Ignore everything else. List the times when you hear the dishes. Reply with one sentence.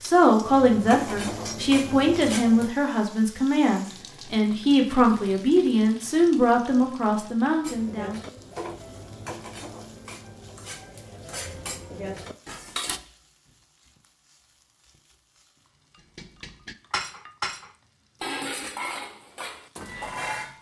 You can hear the dishes from 0.0 to 2.7 s, from 7.6 to 13.0 s and from 16.1 to 20.5 s.